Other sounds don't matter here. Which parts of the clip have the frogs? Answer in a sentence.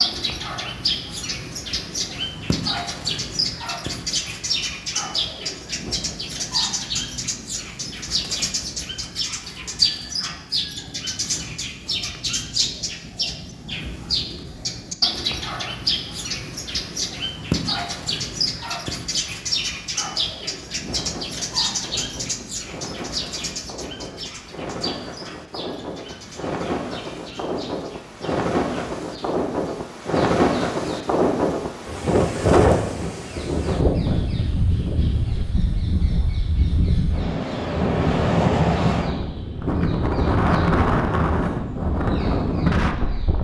The frogs can't be heard in this clip.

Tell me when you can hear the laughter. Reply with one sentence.
You can't hear the laughter here.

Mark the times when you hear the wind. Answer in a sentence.
The wind can be heard from 20.9 to 43.3 s.